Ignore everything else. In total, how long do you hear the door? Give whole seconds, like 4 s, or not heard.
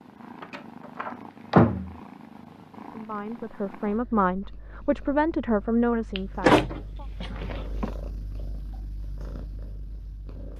3 s.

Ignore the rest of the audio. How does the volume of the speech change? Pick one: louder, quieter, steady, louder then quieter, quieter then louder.
louder then quieter.